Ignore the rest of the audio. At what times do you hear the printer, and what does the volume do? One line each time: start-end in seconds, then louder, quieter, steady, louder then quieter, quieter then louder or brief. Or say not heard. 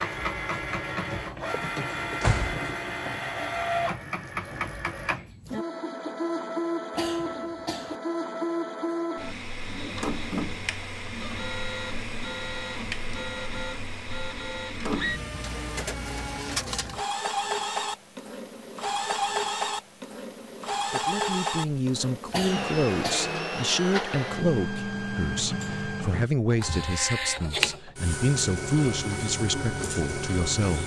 0.0-30.8 steady.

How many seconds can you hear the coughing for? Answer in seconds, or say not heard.
2 s.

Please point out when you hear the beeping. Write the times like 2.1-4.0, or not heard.
not heard.